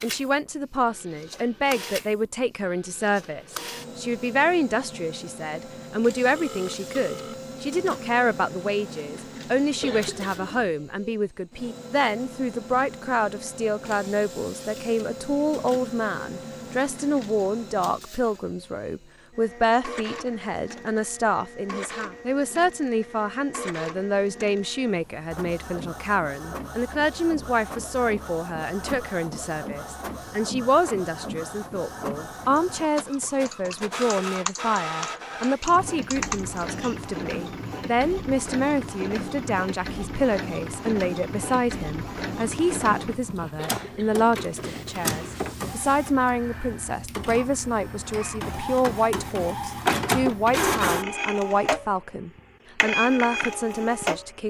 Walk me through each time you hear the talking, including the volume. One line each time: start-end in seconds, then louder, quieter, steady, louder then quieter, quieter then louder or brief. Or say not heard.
0.0-54.4 steady.